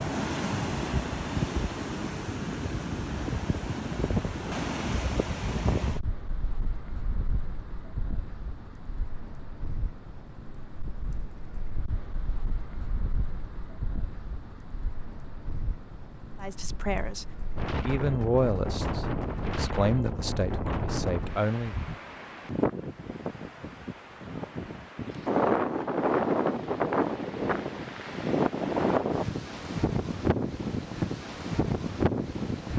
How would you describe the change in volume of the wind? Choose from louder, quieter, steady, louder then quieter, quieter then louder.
quieter then louder.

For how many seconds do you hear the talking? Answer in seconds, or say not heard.
5 s.